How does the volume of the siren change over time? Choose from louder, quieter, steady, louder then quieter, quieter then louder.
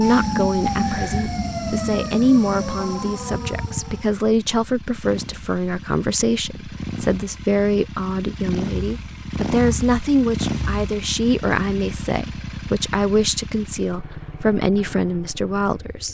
quieter.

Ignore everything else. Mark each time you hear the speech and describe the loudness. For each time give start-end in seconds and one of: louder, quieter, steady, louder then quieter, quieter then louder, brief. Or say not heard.
0.0-16.0 steady.